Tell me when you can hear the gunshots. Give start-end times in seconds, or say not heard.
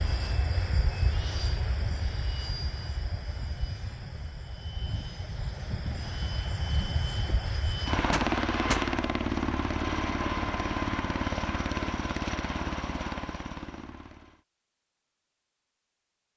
8.1-8.8.